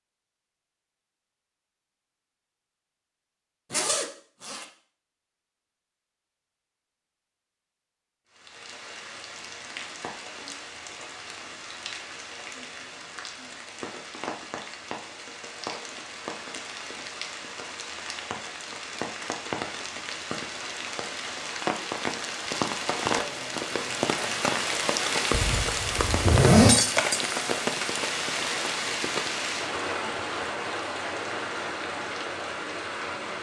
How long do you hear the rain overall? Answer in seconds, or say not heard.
25 s.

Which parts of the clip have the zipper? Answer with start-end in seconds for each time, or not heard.
3.7-4.7, 25.3-26.8.